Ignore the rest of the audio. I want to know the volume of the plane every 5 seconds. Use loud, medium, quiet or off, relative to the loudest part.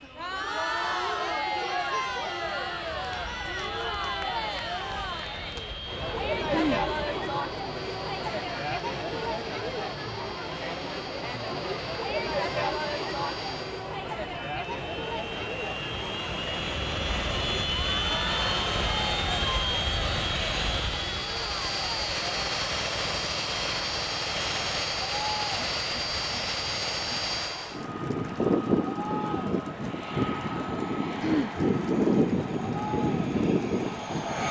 quiet, quiet, quiet, loud, loud, loud, loud.